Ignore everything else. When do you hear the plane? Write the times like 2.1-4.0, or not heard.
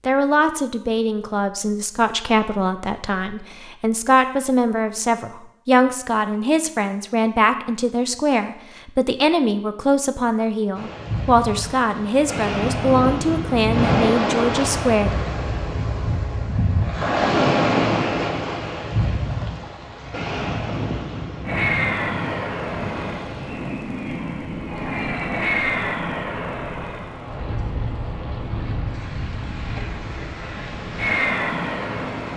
21.4-32.3.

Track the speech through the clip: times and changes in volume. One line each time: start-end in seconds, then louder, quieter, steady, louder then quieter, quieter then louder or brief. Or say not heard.
0.1-15.1 steady.